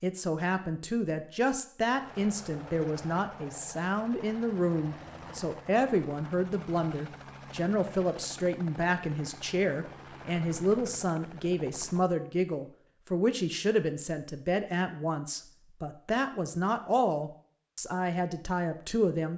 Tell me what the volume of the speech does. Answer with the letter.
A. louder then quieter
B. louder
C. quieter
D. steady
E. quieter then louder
D.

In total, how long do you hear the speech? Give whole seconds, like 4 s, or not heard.
19 s.